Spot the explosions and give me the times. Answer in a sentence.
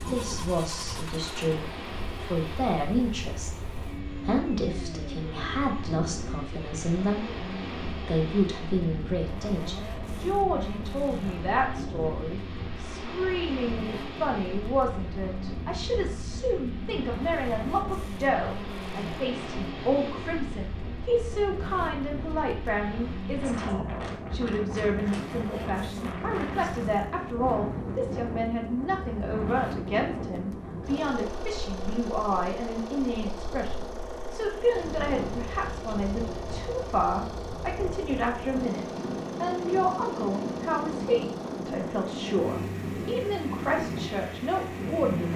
The explosions can't be heard in this clip.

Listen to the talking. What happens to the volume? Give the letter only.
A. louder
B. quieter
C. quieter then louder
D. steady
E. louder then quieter
D.